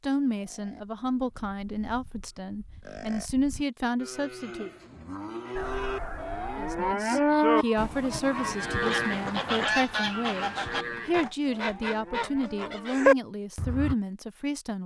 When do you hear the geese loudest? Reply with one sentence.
The volume of the geese peaks at 13 seconds.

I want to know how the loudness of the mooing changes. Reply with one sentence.
The volume of the mooing goes up, then down.